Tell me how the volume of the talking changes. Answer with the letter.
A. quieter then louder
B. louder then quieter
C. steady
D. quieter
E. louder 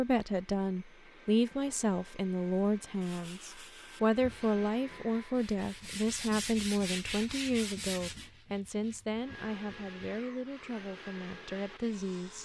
D.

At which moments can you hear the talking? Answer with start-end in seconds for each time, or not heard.
0.0-12.4.